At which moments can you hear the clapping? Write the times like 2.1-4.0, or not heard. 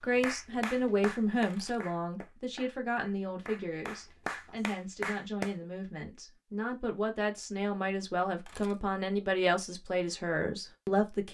0.1-5.5.